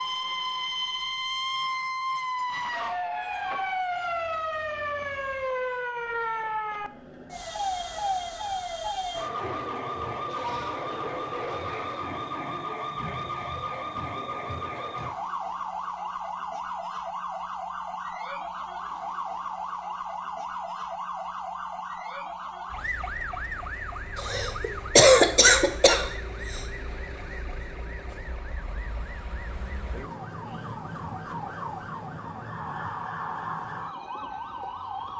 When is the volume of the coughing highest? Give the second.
25 s.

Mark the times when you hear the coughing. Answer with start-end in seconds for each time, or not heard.
24.1-26.6.